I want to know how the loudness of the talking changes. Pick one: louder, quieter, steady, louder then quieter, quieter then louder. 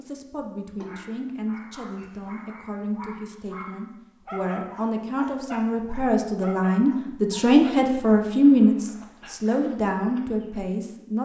louder then quieter.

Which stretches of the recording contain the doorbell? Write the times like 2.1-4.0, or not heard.
not heard.